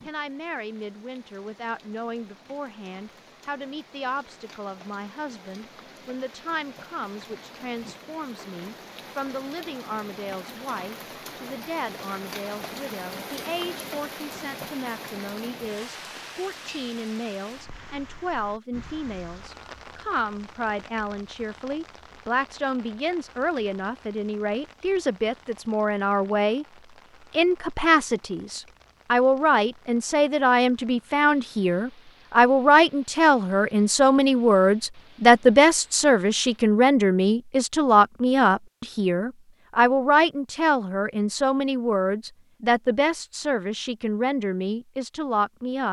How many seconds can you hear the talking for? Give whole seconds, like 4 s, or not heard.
45 s.